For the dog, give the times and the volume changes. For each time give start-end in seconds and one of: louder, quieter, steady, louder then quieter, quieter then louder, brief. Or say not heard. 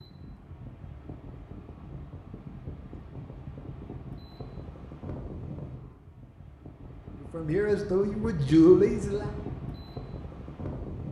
not heard.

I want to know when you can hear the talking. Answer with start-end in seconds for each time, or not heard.
7.2-9.3.